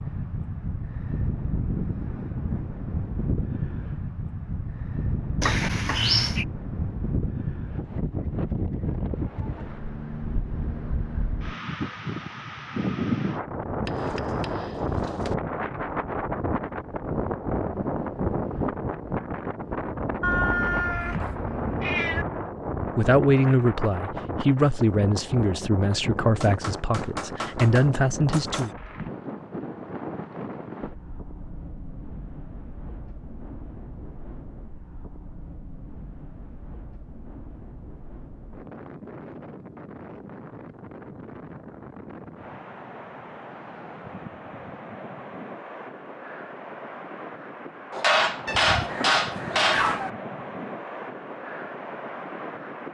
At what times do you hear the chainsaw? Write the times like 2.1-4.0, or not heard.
not heard.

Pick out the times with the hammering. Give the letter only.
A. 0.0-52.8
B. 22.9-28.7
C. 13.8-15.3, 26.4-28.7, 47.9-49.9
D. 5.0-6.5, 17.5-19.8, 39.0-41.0
C.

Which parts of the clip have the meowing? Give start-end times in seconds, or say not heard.
5.4-6.5, 20.2-22.2, 48.5-50.1.